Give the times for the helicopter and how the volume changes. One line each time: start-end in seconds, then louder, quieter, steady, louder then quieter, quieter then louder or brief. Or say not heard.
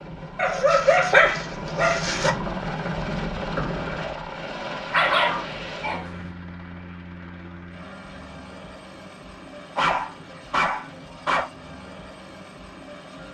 0.0-13.2 quieter.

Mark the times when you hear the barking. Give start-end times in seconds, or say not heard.
0.3-2.3, 4.9-6.3, 9.8-11.4.